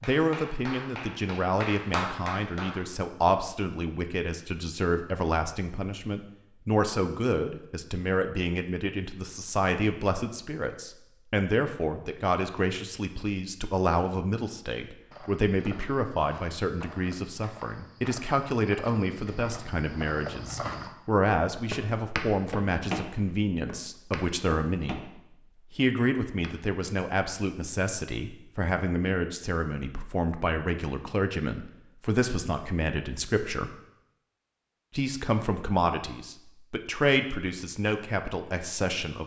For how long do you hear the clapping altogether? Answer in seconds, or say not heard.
3 s.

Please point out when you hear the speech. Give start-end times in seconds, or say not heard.
0.0-33.8, 34.9-39.2.